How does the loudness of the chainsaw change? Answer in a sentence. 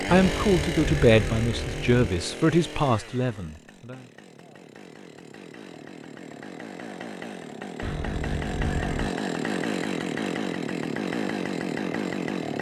The volume of the chainsaw goes down, then up.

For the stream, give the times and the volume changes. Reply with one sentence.
The stream can't be heard in this clip.